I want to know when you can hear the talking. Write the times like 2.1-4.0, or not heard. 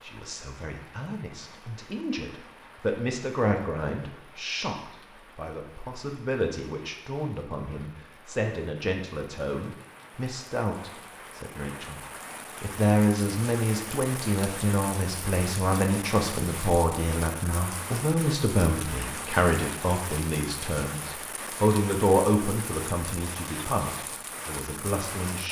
0.0-12.0, 12.6-25.4.